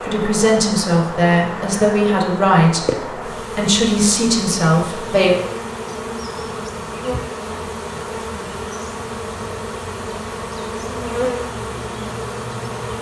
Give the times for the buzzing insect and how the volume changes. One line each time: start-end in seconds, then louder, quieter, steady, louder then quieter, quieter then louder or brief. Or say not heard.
0.0-12.9 steady.